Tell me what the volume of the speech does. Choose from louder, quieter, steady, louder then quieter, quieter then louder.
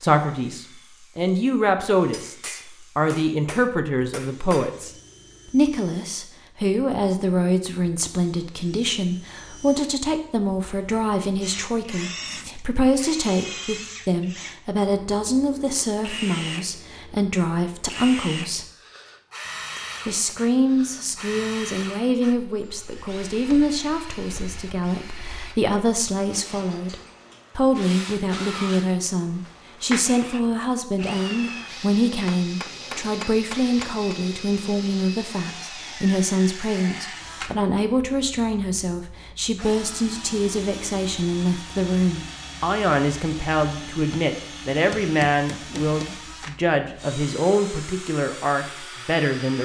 steady.